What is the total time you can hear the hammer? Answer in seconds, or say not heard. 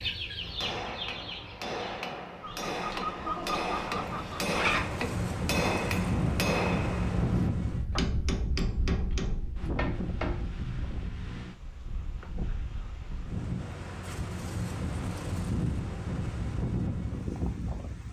10 s.